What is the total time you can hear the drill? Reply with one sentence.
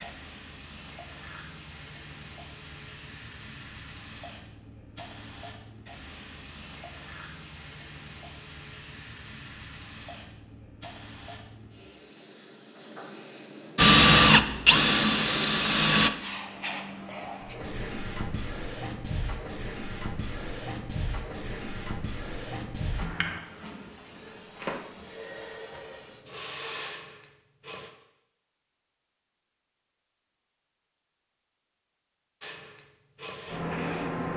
The drill can be heard for 2 seconds in total.